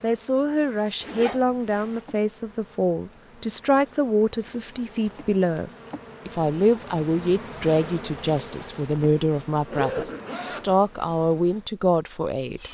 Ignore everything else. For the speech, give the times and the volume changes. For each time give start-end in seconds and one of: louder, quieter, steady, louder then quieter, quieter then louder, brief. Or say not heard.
0.0-12.6 steady.